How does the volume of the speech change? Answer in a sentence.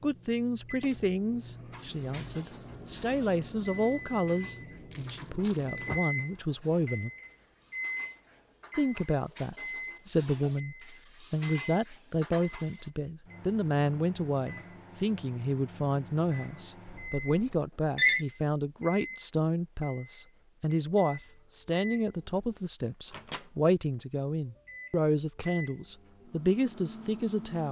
The loudness of the speech stays about the same.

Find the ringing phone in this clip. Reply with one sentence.
You can hear the ringing phone from 16.9 to 18.2 s.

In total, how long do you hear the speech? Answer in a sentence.
The speech can be heard for 26 seconds in total.